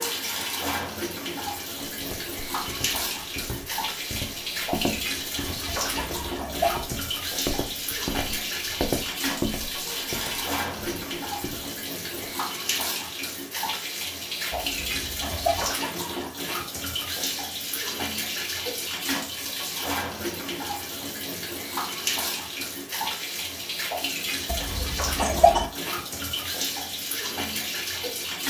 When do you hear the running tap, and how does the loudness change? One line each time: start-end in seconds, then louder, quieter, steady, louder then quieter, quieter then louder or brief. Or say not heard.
0.0-28.4 steady.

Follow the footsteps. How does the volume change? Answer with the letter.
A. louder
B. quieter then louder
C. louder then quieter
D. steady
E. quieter
C.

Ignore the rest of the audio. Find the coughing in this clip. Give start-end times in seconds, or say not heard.
5.7-6.8, 14.5-15.7, 24.4-25.6.